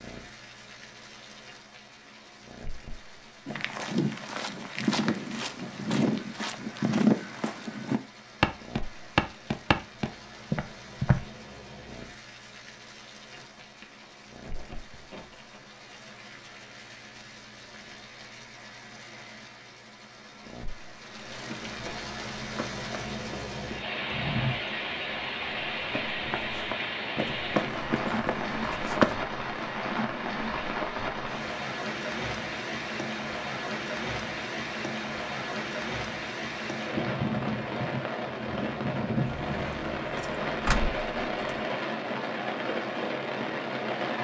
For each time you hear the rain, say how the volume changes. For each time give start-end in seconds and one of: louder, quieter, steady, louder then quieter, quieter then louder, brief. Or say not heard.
0.0-44.2 louder.